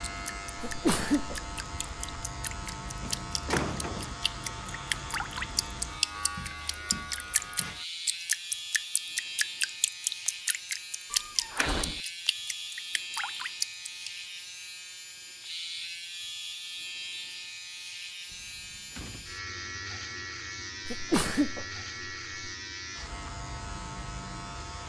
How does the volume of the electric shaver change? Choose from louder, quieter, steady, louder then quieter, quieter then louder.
steady.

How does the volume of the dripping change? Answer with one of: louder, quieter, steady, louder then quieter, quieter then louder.
louder.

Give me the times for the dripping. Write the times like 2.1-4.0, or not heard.
0.1-14.1.